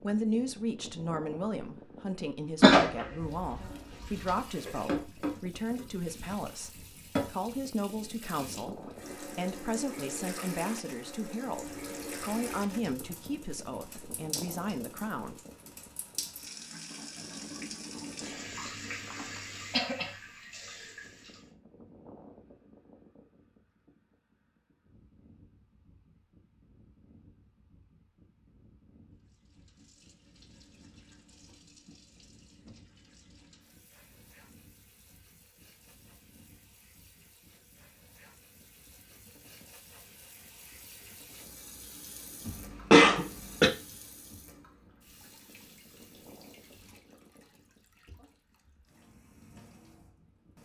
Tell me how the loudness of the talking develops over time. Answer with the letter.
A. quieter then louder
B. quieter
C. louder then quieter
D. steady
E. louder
D.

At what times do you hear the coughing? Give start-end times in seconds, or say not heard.
2.6-4.0, 18.4-20.2, 42.5-43.7.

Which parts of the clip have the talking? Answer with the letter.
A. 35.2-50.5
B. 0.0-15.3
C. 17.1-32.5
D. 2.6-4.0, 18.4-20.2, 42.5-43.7
B.